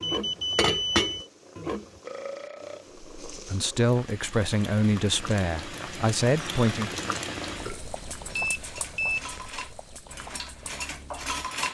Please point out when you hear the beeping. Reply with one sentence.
The beeping can be heard from 0.0 to 1.2 s and from 8.3 to 9.2 s.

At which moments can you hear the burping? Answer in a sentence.
The burping can be heard from 2.0 to 2.9 s and from 7.5 to 8.5 s.